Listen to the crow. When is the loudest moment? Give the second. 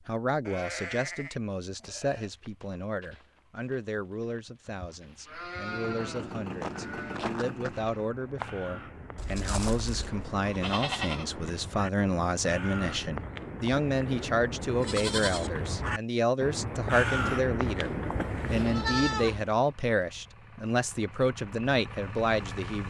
17 s.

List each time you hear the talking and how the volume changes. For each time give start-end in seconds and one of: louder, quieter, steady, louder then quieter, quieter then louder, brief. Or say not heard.
0.1-22.8 louder.